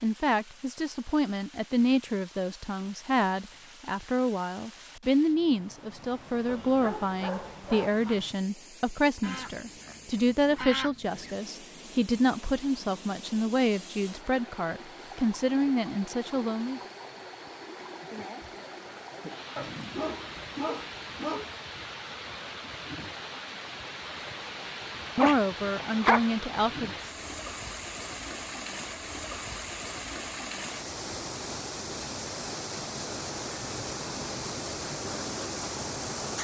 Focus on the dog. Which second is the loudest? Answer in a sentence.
The loudest moment of the dog is at 26 seconds.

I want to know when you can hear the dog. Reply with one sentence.
The dog can be heard from 6.5 to 8.2 s, from 19.6 to 21.5 s and from 25.1 to 26.2 s.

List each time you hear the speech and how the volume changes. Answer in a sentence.
You can hear the speech from 0.0 to 16.8 s, at a steady volume; and briefly from 25.1 to 26.9 s.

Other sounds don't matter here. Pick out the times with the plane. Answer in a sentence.
You can't hear the plane here.